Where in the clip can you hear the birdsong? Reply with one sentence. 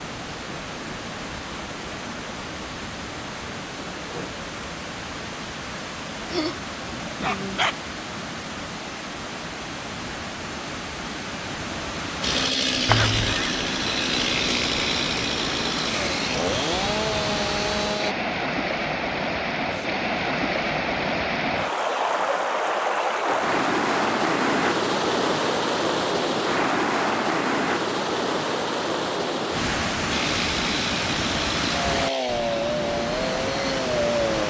The birdsong can't be heard in this clip.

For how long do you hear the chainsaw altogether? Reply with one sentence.
You can hear the chainsaw for 10 seconds altogether.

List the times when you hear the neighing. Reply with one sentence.
You can hear the neighing from 12.8 to 13.6 s.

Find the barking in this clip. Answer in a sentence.
The barking can be heard from 6.2 to 7.8 s.